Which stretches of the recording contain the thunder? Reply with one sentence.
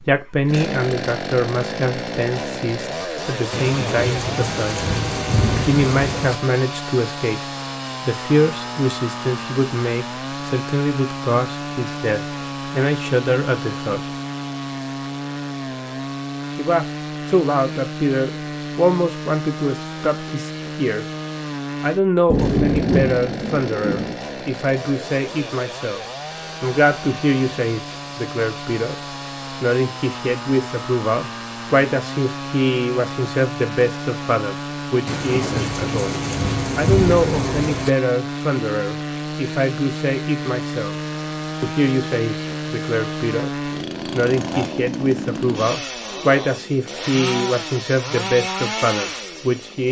You can hear the thunder from 3.5 to 6.3 s, from 22.3 to 24.1 s and from 35.0 to 37.9 s.